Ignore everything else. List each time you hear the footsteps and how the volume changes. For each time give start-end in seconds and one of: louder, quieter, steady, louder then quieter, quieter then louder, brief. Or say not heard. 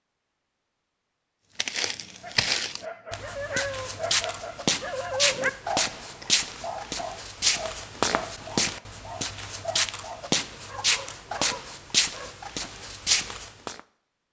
1.6-13.8 steady.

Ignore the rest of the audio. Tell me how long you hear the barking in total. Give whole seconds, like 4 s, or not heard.
10 s.